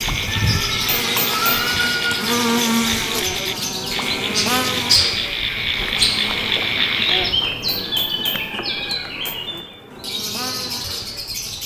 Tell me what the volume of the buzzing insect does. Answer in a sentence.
The volume of the buzzing insect goes down.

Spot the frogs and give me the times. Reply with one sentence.
The frogs can be heard from 0.0 to 7.3 s.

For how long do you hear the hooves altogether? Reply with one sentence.
You can't hear the hooves here.